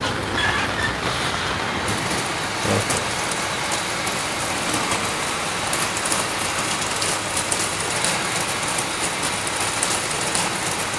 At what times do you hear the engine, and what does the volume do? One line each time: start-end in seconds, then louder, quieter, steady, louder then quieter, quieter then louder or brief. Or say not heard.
0.0-10.9 steady.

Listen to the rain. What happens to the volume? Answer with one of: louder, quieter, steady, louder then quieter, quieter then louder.
steady.